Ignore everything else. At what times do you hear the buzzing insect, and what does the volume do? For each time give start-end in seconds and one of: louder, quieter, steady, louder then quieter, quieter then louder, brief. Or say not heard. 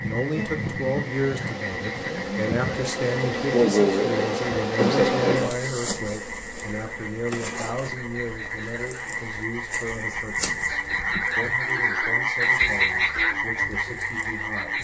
0.0-14.8 louder then quieter.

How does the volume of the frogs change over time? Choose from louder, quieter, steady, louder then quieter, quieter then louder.
louder.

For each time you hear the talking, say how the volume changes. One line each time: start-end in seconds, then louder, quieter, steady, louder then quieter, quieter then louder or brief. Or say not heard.
0.0-14.8 quieter.